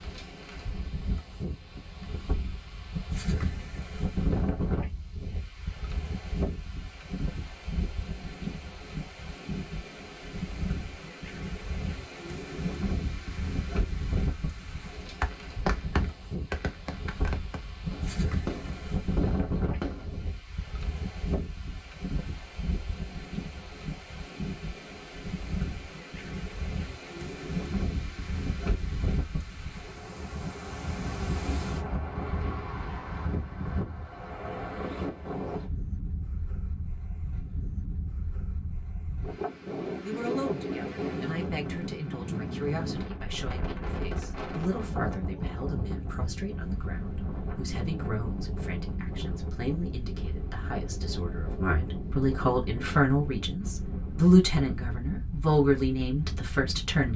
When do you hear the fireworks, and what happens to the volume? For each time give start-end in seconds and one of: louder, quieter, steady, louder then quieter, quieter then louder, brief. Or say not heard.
15.2-20.4 quieter then louder.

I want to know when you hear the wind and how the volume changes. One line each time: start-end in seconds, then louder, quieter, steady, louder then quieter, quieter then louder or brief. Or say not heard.
0.0-57.1 steady.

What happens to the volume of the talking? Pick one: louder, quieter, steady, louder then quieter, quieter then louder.
louder.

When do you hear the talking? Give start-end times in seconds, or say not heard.
40.0-57.1.